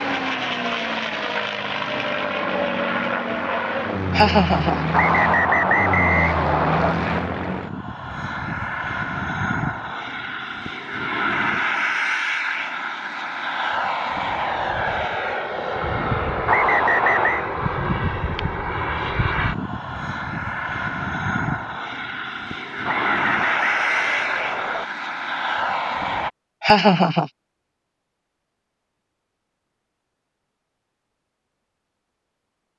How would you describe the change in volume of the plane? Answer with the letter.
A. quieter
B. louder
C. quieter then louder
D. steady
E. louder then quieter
D.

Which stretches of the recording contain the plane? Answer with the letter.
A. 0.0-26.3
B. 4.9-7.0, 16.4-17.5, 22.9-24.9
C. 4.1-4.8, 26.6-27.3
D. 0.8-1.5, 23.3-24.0
A.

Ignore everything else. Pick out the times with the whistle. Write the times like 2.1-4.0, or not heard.
4.9-7.0, 16.4-17.5, 22.9-24.9.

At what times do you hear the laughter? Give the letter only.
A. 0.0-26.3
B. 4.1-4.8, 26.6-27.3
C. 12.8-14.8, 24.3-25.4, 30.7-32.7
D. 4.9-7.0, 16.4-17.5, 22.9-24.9
B.